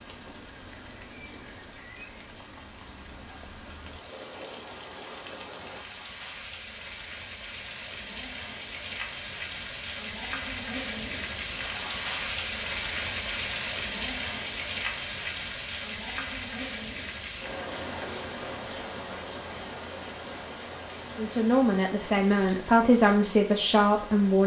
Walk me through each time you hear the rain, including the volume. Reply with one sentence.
The rain can be heard from 0.0 to 24.4 s, getting louder then quieter.